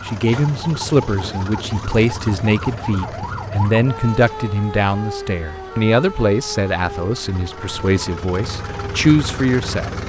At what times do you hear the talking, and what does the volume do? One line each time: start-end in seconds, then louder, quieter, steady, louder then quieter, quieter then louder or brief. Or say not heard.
0.1-9.9 steady.